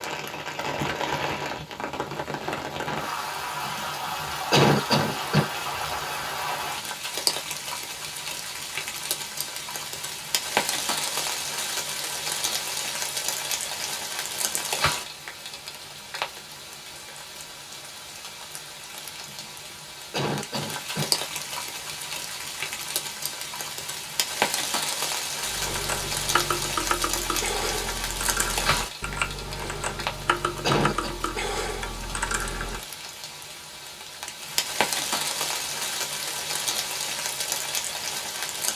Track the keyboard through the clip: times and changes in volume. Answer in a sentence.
The keyboard can be heard from 25.4 to 32.8 s, at a steady volume.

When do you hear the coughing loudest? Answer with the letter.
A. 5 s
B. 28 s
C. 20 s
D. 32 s
A.